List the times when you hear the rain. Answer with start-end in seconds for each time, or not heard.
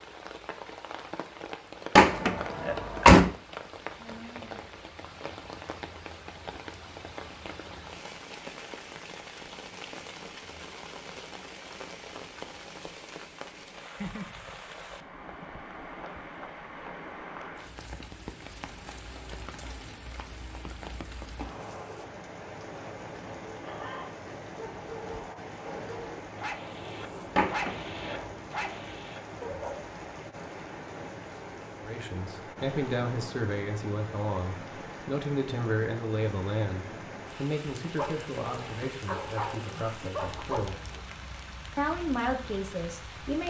0.0-43.4.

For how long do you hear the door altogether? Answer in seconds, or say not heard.
2 s.